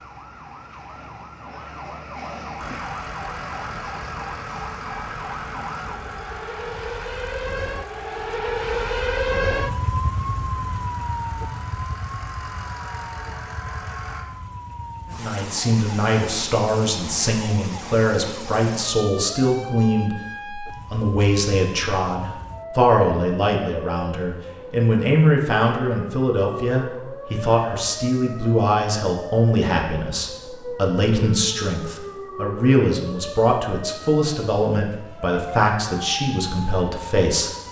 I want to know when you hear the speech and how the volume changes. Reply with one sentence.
You can hear the speech from 15.1 to 37.5 s, at a steady volume.